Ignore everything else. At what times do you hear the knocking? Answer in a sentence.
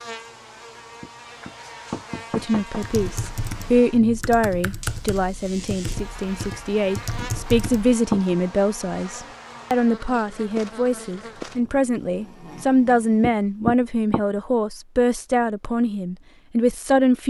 You can hear the knocking from 1.0 to 2.8 s, from 7.2 to 8.3 s and from 13.2 to 14.2 s.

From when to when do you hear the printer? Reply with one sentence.
The printer can't be heard in this clip.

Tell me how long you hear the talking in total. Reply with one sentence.
The talking can be heard for 15 seconds in total.